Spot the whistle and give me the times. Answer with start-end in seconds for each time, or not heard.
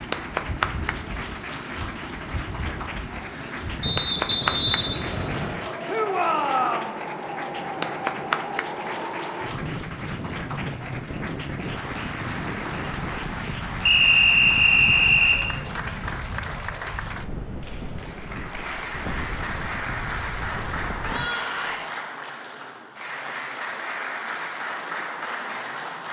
3.8-5.6, 13.8-15.5.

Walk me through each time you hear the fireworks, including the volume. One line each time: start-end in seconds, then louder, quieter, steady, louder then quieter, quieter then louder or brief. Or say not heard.
not heard.